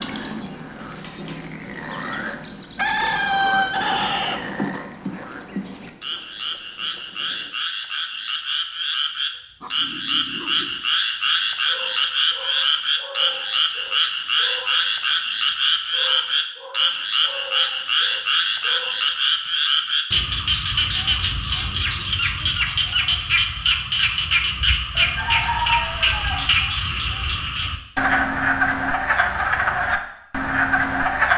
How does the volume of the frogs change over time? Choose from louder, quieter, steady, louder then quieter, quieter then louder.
louder.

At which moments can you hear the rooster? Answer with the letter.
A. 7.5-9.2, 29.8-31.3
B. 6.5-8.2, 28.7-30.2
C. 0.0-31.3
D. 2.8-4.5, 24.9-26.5
D.